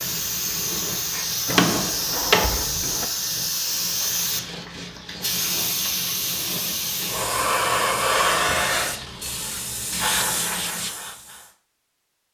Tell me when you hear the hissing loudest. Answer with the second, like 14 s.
8 s.